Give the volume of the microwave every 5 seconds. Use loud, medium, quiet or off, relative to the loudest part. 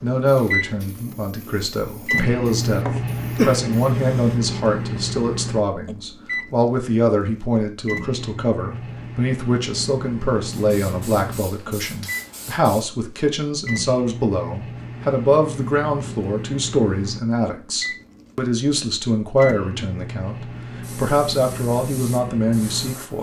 loud, medium, medium, medium, medium.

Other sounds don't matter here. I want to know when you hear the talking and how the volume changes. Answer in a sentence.
The talking can be heard from 0.0 to 23.1 s, at a steady volume.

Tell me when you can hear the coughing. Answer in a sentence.
The coughing can be heard from 2.6 to 3.6 s.